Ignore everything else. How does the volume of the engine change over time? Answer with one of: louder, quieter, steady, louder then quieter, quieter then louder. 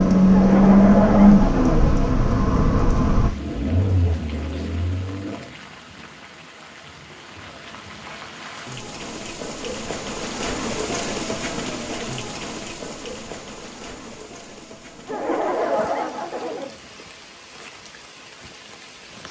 quieter.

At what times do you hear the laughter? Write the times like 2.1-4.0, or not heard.
0.3-1.8, 15.1-16.8.